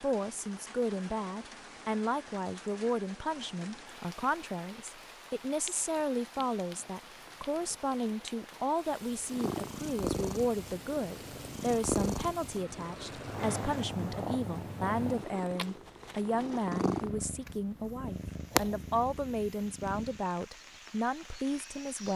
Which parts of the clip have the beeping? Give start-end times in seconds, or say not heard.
not heard.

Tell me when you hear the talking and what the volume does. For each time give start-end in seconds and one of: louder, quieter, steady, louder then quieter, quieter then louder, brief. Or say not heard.
0.0-22.1 steady.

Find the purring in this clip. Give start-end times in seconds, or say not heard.
9.3-20.2.